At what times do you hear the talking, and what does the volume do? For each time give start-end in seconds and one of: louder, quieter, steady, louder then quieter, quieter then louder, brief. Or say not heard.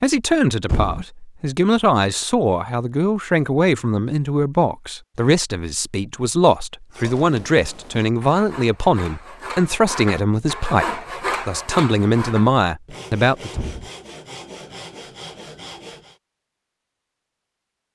0.0-13.5 steady.